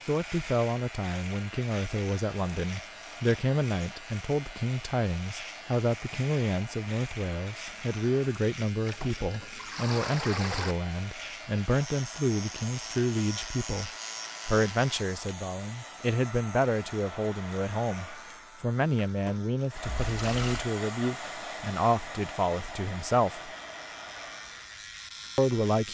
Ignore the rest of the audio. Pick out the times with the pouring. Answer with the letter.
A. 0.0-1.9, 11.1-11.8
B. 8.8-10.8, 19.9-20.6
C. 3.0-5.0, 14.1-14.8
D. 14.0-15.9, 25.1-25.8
B.